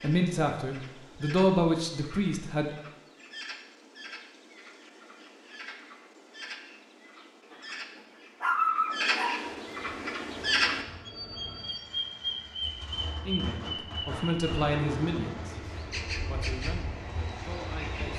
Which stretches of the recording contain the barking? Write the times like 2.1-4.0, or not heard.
8.4-9.4.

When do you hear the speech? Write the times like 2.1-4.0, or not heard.
0.0-2.8, 13.2-18.1.